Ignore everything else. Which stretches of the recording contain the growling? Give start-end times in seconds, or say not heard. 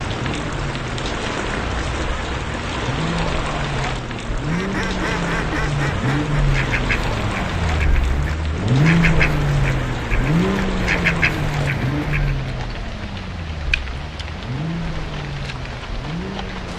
not heard.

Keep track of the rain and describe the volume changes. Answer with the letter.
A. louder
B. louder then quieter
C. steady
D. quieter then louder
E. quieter
E.